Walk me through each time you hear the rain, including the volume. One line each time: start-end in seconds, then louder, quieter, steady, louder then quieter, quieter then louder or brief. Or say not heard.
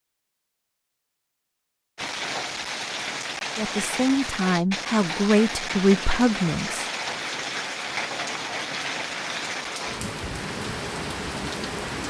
1.9-12.0 steady.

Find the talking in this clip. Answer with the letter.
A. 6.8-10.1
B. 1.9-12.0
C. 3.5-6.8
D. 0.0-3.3
C.